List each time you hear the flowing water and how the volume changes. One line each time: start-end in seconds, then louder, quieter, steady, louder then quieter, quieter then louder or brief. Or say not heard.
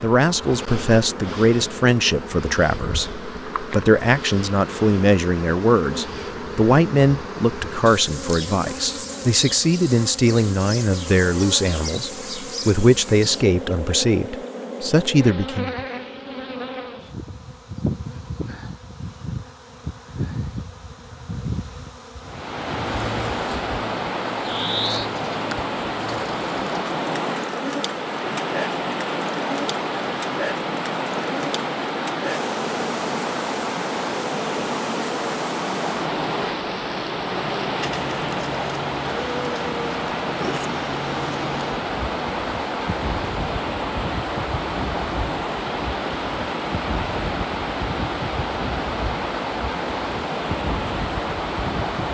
22.2-52.1 steady.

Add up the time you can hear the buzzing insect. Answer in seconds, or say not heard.
52 s.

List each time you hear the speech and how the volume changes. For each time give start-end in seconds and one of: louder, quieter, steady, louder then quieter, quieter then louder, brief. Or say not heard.
0.0-15.8 steady.